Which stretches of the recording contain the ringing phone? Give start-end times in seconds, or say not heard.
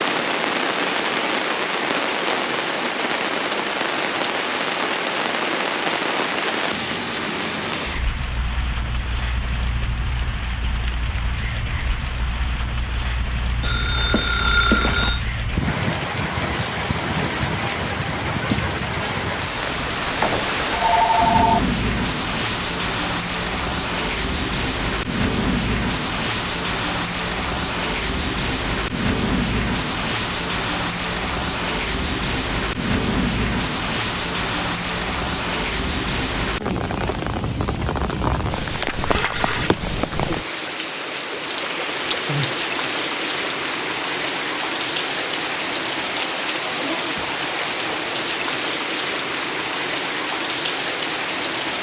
13.6-15.2, 20.7-21.6, 39.0-39.7.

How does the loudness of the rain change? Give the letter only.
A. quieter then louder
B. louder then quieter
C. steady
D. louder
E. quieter
C.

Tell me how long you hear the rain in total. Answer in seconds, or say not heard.
52 s.